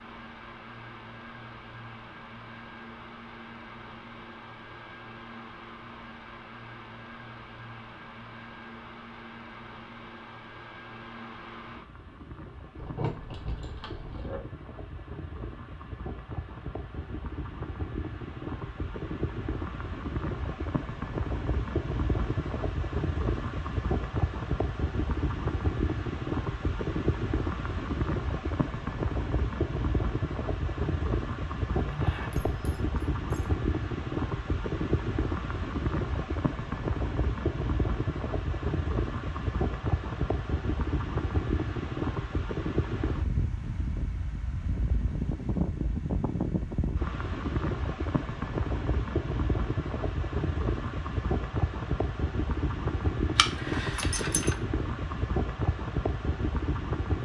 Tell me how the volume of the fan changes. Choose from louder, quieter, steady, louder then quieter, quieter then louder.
louder.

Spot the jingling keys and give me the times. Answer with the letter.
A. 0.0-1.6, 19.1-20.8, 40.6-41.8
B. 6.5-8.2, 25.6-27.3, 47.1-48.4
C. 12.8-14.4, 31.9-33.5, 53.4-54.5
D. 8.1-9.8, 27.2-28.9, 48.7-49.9
C.